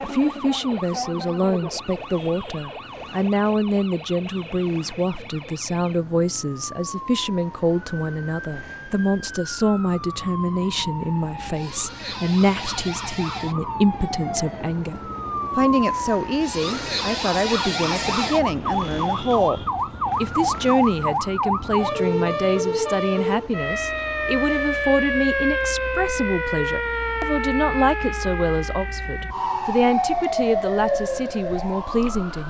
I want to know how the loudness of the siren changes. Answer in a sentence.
The volume of the siren goes up.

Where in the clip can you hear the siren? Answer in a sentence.
The siren can be heard from 0.0 to 32.4 s.